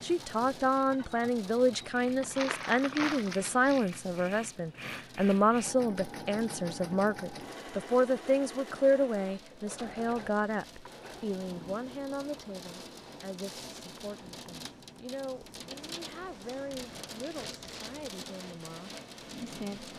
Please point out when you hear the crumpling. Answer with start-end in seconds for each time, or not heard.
2.2-3.9, 17.2-18.0.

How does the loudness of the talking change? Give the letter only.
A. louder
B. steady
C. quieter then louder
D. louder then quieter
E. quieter
E.